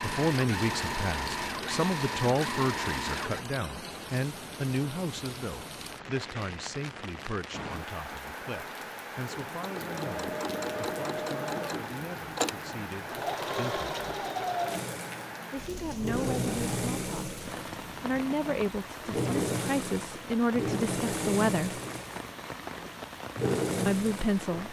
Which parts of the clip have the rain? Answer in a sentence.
The rain can be heard from 0.0 to 24.6 s.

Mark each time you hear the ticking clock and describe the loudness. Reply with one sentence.
You can't hear the ticking clock here.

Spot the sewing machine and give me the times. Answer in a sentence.
You can hear the sewing machine from 0.0 to 3.5 s and from 9.2 to 24.6 s.